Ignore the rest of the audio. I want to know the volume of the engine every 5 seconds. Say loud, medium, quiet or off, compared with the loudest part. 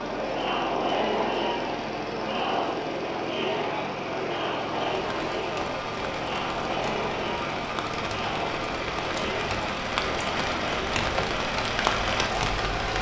medium, loud, loud.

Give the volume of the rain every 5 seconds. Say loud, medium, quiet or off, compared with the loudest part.
off, medium, loud.